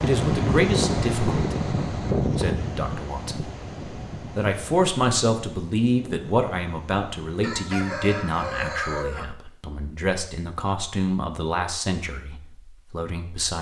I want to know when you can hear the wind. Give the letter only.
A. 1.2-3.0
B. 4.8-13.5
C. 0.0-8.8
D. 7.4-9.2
C.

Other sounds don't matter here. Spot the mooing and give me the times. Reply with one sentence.
The mooing can't be heard in this clip.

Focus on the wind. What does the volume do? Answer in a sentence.
The loudness of the wind goes down.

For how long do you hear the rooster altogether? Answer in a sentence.
You can hear the rooster for 2 seconds altogether.